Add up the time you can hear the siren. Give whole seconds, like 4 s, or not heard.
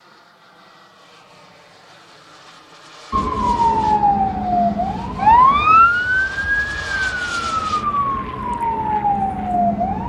7 s.